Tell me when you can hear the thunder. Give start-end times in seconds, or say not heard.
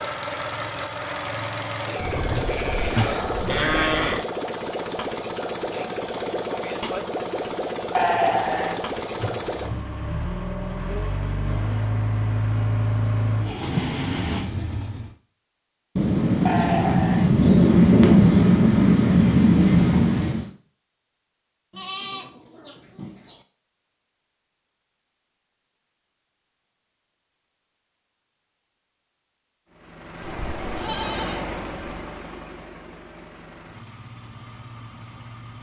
15.9-20.5.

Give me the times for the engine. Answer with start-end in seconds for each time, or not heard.
0.0-15.2, 29.7-35.5.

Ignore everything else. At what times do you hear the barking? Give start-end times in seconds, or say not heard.
not heard.